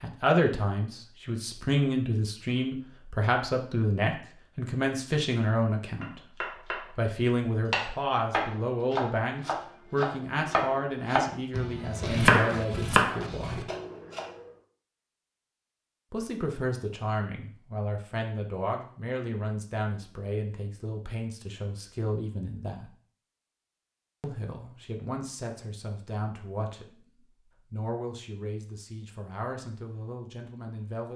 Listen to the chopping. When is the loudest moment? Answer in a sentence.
The volume of the chopping peaks at 12 seconds.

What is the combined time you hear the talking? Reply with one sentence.
The talking can be heard for 27 seconds in total.